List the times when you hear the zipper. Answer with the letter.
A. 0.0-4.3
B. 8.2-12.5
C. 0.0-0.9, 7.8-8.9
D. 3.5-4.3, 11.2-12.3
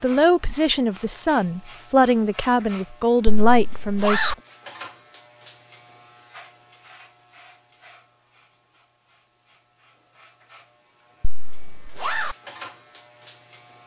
D.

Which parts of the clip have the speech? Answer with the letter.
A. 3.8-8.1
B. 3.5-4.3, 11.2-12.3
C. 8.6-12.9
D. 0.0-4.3
D.